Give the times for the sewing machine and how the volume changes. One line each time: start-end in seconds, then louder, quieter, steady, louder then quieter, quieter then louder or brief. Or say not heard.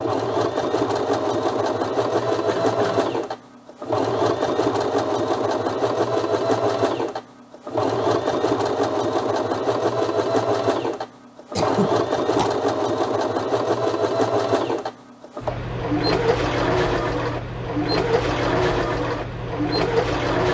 0.0-20.4 steady.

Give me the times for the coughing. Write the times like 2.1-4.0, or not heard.
2.3-3.1, 11.6-12.5.